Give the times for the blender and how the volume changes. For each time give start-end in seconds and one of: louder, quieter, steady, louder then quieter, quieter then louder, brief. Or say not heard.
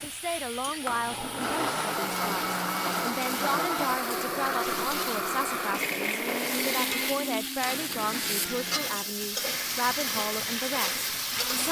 0.0-11.6 quieter.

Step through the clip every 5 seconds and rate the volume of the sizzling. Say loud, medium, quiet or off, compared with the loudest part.
medium, loud, loud.